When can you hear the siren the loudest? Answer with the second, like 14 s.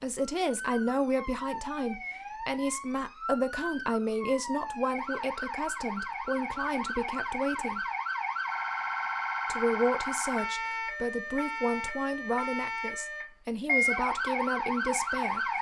14 s.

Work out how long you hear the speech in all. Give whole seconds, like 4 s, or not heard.
14 s.